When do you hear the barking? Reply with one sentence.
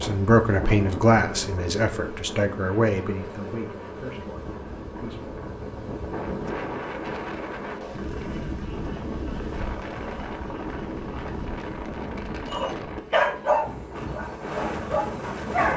You can hear the barking from 12.5 to 15.7 s.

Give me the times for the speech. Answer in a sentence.
The speech can be heard from 0.0 to 5.3 s.